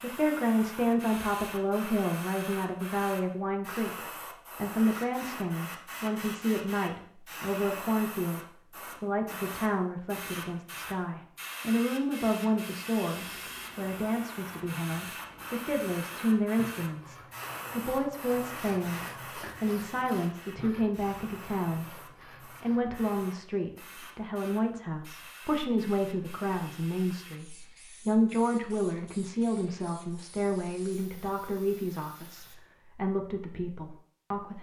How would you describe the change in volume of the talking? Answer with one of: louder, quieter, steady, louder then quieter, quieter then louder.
steady.